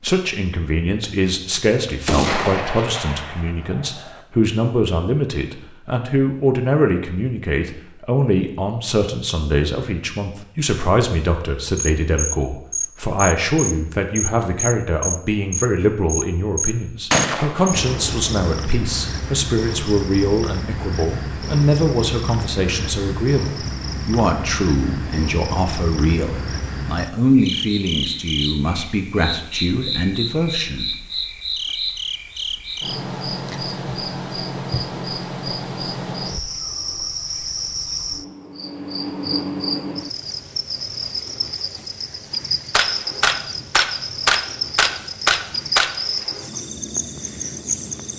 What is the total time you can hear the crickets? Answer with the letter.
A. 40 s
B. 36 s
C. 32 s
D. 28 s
B.